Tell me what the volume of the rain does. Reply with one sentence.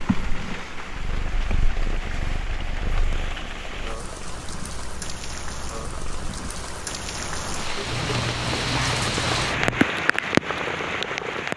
The loudness of the rain goes up.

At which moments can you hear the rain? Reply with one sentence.
The rain can be heard from 0.0 to 11.5 s.